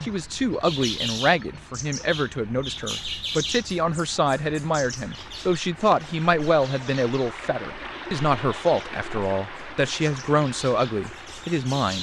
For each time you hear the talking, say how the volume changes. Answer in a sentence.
You can hear the talking from 0.0 to 11.9 s, at a steady volume.